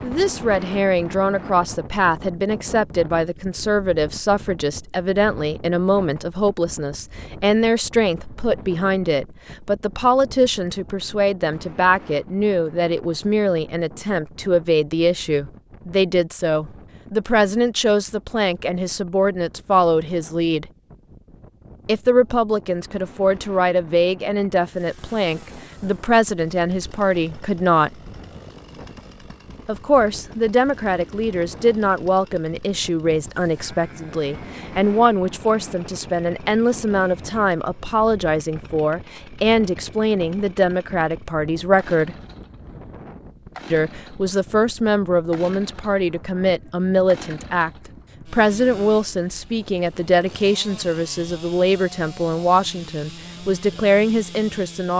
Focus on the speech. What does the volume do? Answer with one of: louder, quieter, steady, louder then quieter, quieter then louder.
steady.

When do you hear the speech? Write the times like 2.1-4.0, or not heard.
0.0-20.6, 21.9-27.9, 29.6-42.1, 43.7-54.9.